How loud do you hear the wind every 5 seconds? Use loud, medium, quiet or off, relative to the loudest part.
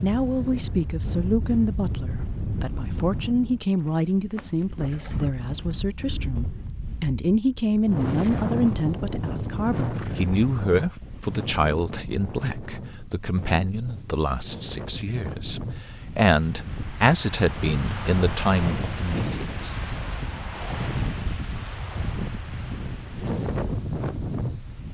loud, loud, medium, loud, loud.